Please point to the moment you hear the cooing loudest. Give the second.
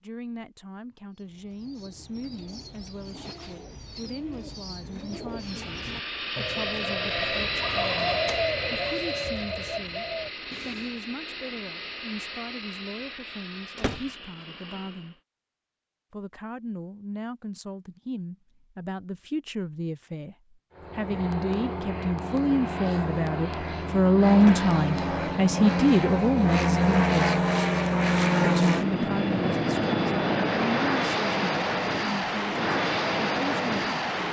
8 s.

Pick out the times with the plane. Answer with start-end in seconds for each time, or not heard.
5.3-15.2, 20.8-34.2.